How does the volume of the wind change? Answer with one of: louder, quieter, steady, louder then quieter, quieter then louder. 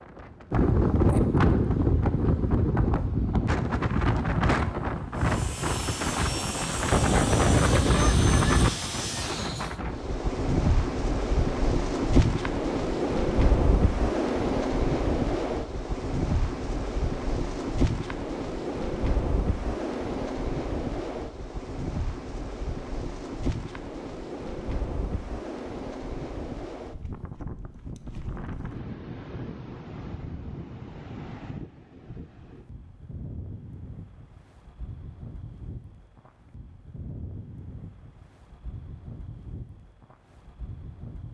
quieter.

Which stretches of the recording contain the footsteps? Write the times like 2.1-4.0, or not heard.
not heard.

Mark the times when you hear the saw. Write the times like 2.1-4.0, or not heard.
5.2-9.8.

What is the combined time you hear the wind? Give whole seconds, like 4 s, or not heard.
41 s.